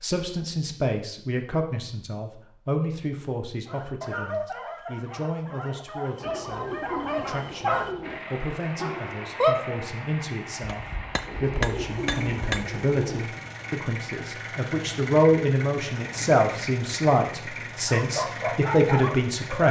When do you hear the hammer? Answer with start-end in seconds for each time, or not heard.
10.7-12.7.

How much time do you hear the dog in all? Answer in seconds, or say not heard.
8 s.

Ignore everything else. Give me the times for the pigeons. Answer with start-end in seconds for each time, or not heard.
6.2-8.2, 11.2-13.3.